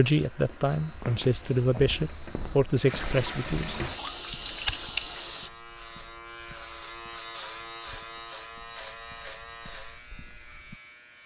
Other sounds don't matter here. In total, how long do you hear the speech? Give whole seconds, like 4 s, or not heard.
4 s.